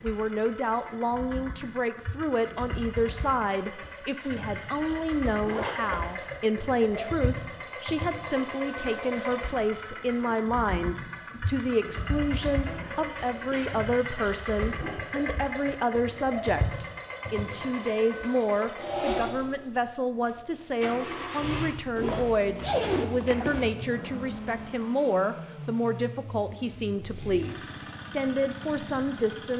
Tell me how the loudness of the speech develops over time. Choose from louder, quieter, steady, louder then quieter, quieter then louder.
steady.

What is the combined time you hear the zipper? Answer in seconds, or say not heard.
4 s.